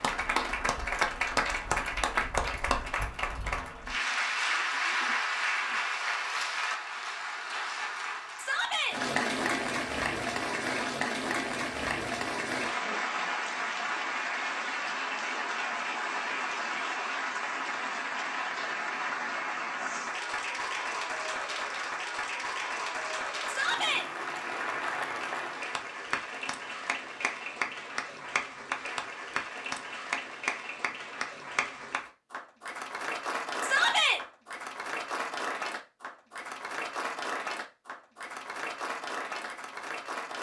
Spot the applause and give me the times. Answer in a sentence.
You can hear the applause from 0.0 to 40.3 s.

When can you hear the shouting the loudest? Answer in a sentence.
The loudest moment of the shouting is at 34 seconds.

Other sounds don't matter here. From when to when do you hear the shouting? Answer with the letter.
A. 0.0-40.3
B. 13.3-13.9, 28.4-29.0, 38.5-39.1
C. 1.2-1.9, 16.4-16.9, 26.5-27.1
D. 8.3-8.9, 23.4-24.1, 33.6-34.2
D.